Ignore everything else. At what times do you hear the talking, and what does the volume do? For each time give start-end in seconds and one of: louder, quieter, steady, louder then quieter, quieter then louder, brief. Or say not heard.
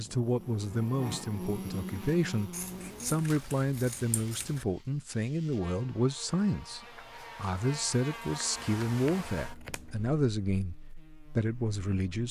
0.0-10.8 steady
11.3-12.2 brief.